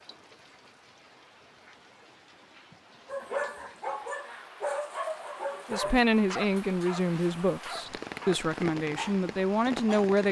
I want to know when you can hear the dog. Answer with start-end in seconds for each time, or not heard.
3.0-10.1.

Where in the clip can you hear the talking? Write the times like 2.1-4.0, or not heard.
5.7-10.2.